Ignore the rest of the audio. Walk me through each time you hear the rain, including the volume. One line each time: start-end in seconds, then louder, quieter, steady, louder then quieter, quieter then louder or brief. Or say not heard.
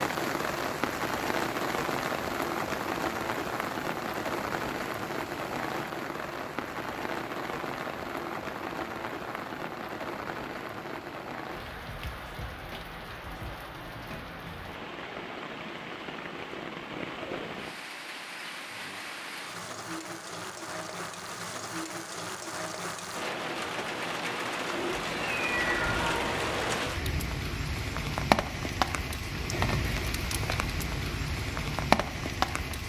0.0-32.8 quieter then louder.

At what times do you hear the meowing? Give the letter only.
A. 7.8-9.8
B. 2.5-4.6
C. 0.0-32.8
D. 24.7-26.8
D.